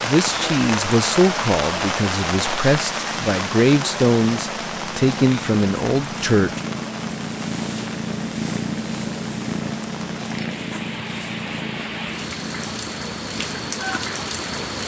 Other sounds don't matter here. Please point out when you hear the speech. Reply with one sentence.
You can hear the speech from 0.0 to 6.6 s.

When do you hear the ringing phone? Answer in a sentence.
You can't hear the ringing phone here.